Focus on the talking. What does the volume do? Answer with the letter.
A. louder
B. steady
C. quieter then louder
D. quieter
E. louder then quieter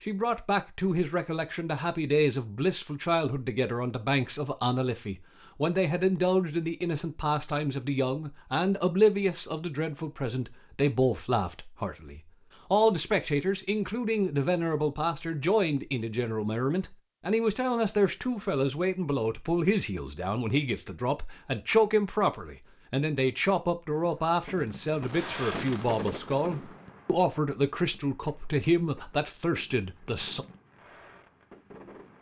B.